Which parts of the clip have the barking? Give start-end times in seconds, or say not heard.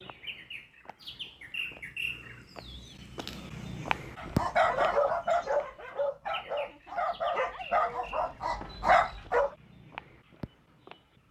4.2-9.5.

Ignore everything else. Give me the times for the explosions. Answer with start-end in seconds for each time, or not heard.
not heard.